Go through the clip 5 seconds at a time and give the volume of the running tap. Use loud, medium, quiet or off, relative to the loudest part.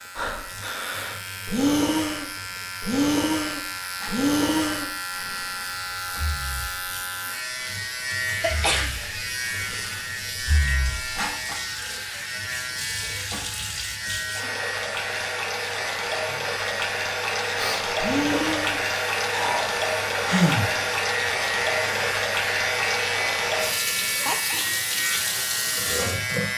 quiet, quiet, medium, loud, loud, loud.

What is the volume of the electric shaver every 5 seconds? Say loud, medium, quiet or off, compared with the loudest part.
medium, loud, loud, medium, loud, loud.